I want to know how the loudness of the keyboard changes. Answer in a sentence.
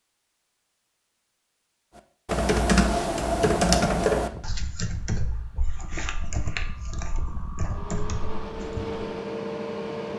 The volume of the keyboard goes down.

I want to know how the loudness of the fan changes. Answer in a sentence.
The loudness of the fan goes up.